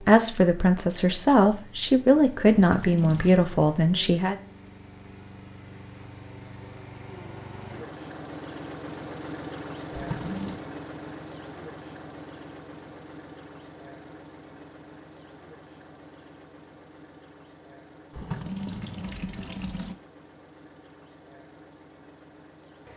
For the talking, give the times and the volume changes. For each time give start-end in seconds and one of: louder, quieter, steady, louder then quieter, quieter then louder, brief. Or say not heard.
0.0-4.3 steady.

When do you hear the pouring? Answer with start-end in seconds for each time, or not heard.
2.5-3.5, 9.9-10.6, 18.1-19.9.